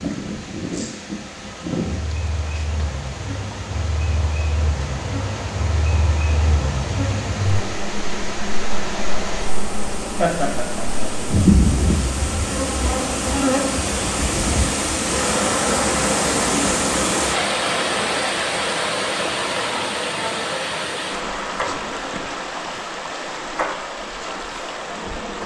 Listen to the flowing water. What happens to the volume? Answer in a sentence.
The loudness of the flowing water goes up, then down.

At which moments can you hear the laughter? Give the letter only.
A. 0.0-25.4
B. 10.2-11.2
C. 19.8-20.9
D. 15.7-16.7
B.